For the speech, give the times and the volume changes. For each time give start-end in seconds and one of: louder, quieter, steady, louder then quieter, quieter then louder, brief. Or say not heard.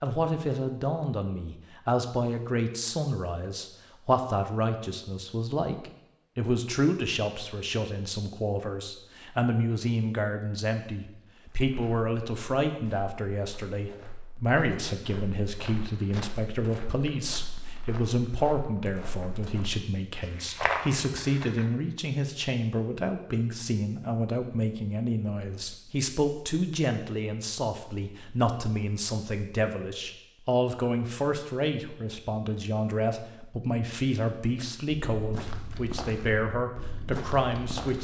0.0-37.9 steady.